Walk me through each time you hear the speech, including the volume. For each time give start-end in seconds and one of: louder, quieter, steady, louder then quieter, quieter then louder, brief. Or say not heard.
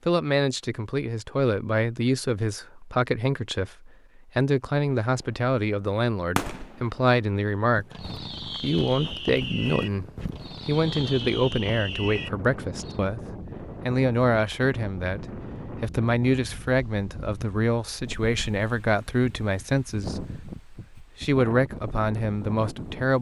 0.1-23.1 steady.